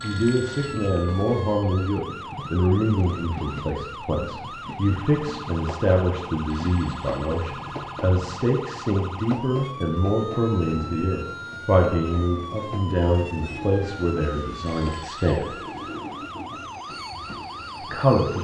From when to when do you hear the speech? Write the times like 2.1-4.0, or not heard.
0.0-15.6, 17.8-18.4.